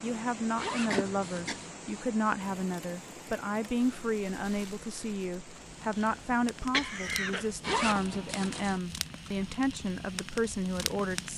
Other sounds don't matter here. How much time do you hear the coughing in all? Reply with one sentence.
You can hear the coughing for 2 seconds altogether.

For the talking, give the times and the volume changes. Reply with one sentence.
You can hear the talking from 0.0 to 11.3 s, at a steady volume.